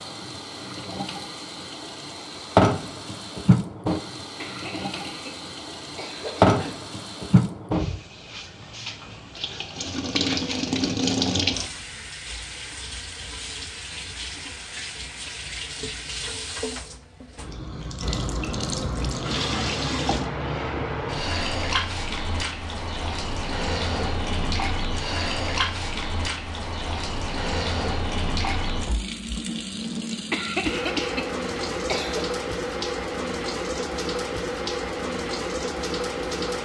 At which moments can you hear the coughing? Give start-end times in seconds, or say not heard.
4.4-6.9, 30.3-32.2.